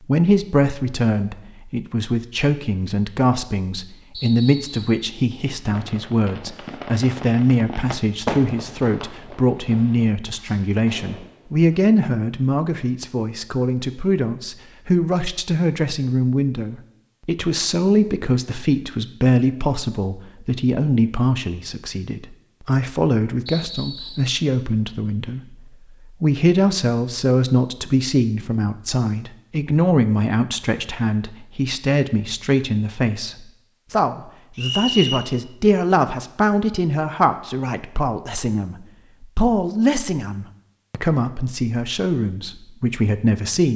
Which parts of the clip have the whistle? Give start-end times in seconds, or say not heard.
4.1-5.0, 23.4-24.3, 34.5-35.2.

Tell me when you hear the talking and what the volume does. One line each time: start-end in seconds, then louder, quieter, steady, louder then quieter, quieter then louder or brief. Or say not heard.
0.0-43.7 steady.